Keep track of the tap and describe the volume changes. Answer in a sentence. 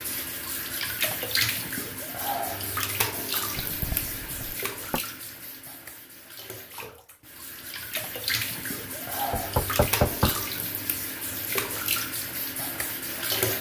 The volume of the tap goes down, then up.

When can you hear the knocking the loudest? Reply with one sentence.
The volume of the knocking peaks at 10 seconds.